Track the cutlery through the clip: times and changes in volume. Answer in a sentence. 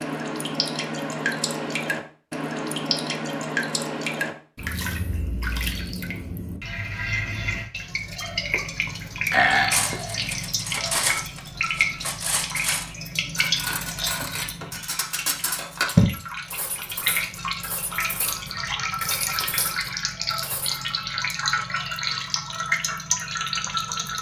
You can hear the cutlery from 9.7 to 20.8 s, getting quieter.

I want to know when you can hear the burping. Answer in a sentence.
The burping can be heard from 9.3 to 10.3 s.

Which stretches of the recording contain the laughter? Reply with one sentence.
The laughter can't be heard in this clip.